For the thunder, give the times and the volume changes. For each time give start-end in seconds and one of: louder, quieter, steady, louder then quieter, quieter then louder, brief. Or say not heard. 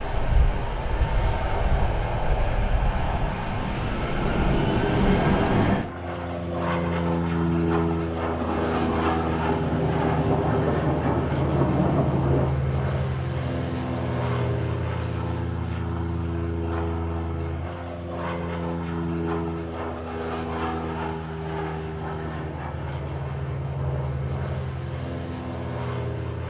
8.4-12.5 louder.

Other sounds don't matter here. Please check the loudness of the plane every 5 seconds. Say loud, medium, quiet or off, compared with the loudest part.
loud, loud, loud, medium, medium, medium.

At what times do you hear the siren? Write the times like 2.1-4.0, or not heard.
not heard.